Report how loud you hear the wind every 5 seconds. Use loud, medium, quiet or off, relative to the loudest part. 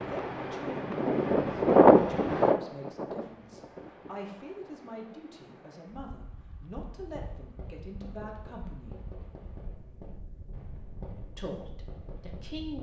loud, quiet, quiet.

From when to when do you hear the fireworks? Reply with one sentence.
You can hear the fireworks from 7.0 to 12.7 s.